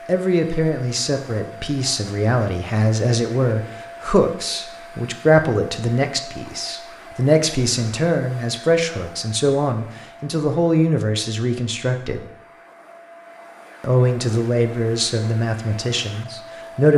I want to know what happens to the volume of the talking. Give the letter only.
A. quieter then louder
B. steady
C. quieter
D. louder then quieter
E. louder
B.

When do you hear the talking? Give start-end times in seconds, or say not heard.
0.1-12.3, 13.8-16.9.